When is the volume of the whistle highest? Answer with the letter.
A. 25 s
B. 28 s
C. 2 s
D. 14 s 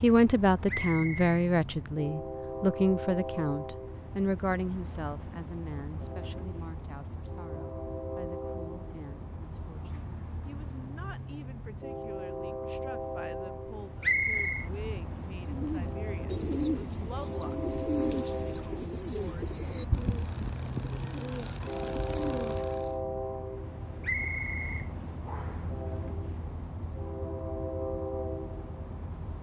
D.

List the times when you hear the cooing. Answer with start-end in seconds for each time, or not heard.
15.4-22.9.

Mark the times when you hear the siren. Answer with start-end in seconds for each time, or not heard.
not heard.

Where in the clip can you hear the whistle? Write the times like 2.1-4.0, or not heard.
0.7-1.2, 14.0-14.7, 24.0-25.6.